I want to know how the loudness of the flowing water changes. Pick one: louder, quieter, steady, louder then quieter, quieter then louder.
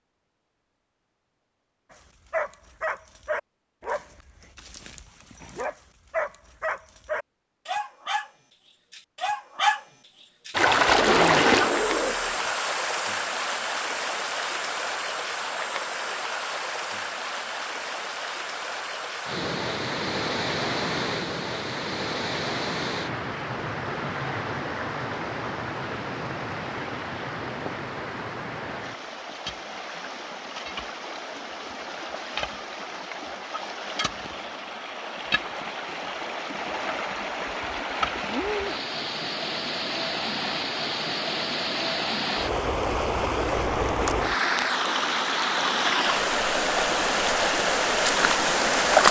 quieter then louder.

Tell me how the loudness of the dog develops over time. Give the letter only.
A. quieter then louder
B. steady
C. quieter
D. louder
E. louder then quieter
A.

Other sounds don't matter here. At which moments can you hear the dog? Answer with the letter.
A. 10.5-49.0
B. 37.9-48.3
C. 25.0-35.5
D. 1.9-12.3
D.